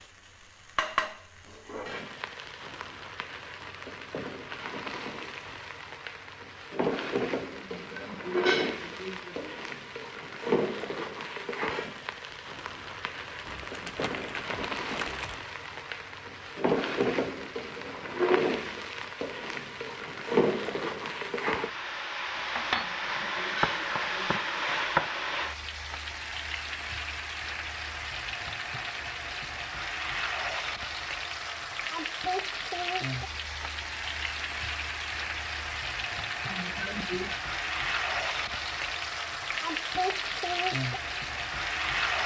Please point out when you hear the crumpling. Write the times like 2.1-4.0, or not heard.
13.3-15.3.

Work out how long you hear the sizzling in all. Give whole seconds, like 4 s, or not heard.
42 s.